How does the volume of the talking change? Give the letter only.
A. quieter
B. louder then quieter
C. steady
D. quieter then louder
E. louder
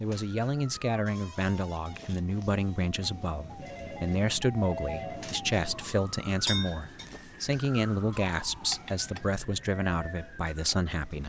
C.